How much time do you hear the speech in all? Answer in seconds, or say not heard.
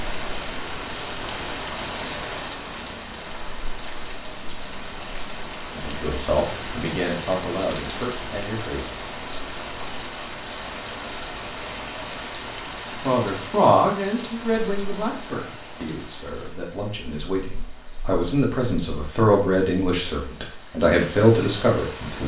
12 s.